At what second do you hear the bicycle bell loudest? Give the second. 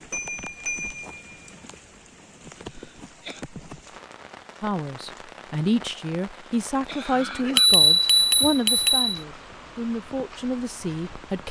8 s.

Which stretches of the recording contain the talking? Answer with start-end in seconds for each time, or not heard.
4.6-11.4.